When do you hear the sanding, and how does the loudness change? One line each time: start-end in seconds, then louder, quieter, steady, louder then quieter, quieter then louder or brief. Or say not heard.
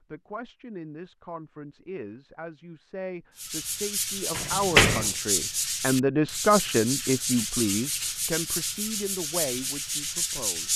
3.4-10.7 steady.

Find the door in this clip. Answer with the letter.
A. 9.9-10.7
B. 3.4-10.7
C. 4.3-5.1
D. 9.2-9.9
C.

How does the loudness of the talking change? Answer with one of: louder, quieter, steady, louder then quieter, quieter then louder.
louder then quieter.